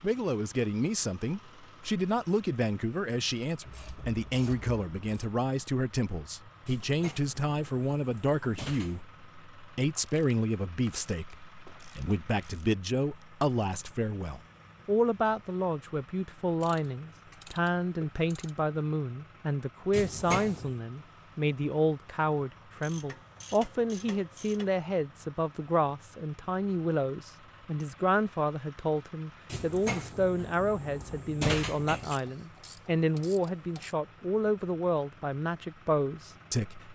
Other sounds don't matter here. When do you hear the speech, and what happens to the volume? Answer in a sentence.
You can hear the speech from 0.0 to 36.8 s, at a steady volume.